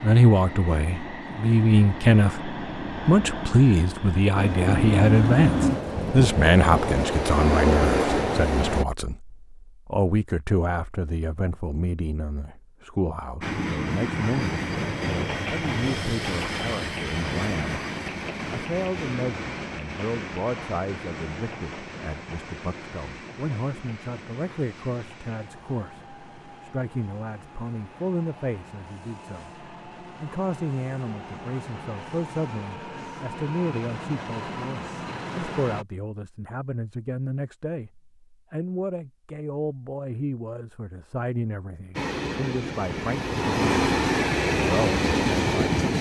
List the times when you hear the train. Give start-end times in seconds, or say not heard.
0.0-8.8, 13.4-35.9, 42.0-45.9.